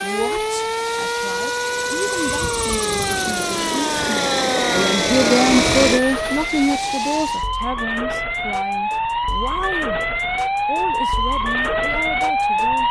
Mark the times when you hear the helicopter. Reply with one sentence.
The helicopter can be heard from 0.0 to 7.5 s.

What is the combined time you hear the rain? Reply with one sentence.
The rain can't be heard in this clip.